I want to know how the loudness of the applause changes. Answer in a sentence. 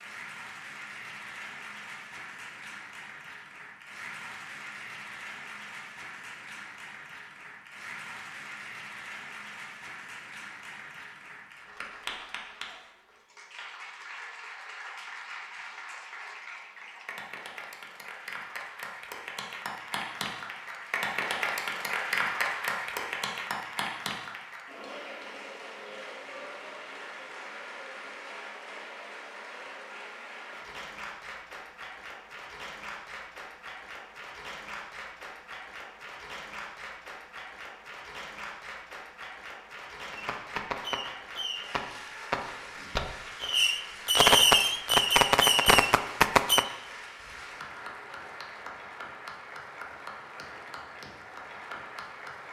The volume of the applause goes up, then down.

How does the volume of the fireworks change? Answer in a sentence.
The loudness of the fireworks goes up.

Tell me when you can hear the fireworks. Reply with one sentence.
You can hear the fireworks from 40.1 to 46.6 s.